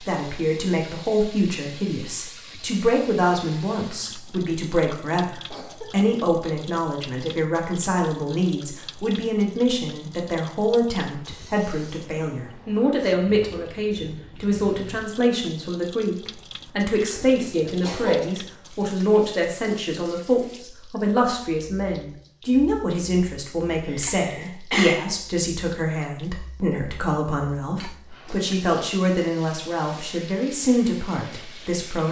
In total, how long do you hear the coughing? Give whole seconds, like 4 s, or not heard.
3 s.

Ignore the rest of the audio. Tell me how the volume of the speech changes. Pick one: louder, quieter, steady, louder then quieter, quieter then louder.
steady.